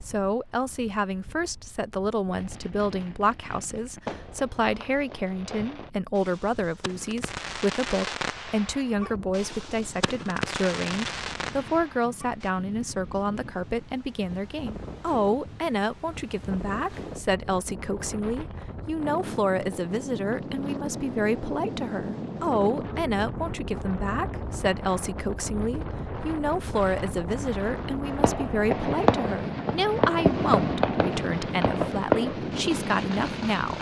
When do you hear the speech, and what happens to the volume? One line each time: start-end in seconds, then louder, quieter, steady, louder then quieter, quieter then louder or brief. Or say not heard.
0.1-33.7 steady.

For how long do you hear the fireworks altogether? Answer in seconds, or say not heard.
16 s.